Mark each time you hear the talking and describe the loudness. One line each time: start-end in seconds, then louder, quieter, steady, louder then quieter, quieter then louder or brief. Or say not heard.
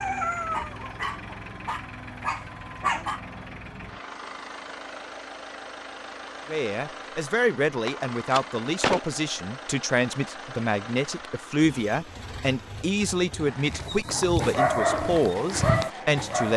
6.5-16.5 steady.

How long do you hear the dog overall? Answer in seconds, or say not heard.
6 s.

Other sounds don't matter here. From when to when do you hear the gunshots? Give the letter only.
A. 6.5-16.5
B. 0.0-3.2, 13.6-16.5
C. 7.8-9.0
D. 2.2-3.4
C.